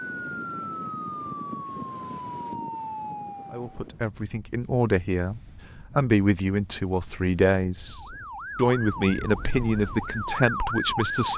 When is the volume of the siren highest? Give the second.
11 s.